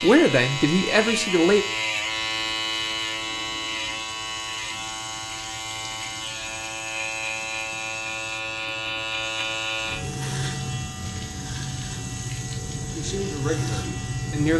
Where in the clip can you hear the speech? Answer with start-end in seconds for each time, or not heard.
0.0-1.6, 12.9-14.5.